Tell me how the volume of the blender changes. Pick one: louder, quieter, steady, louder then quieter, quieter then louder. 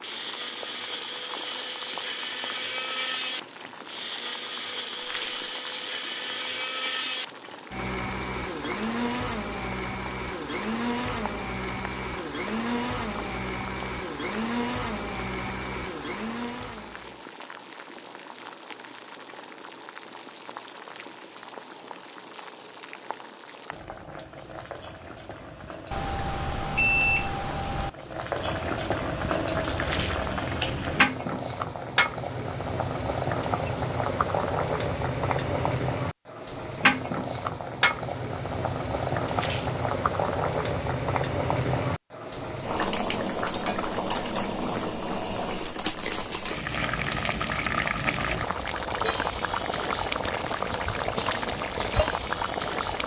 steady.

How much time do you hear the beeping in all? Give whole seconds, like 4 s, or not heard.
2 s.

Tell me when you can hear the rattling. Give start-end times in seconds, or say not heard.
5.0-5.5, 29.8-30.3, 39.3-39.8.